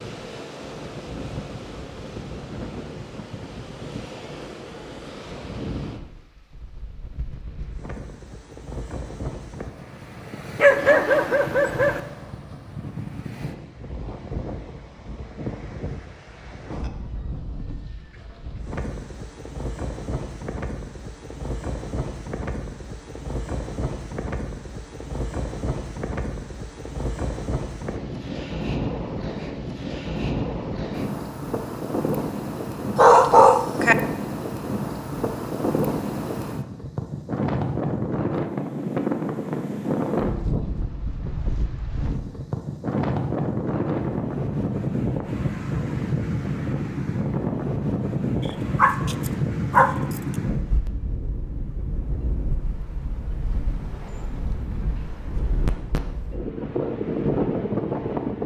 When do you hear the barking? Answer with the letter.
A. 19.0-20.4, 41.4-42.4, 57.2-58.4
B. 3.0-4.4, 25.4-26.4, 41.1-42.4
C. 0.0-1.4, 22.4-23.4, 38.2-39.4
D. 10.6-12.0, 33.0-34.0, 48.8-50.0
D.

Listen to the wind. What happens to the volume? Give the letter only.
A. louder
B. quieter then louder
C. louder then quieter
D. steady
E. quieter
A.